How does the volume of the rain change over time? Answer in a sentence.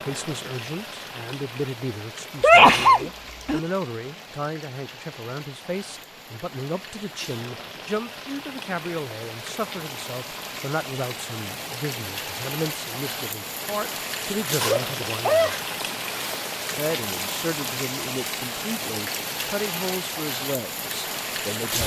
The loudness of the rain goes up.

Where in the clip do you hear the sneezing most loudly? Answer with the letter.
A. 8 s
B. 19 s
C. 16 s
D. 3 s
D.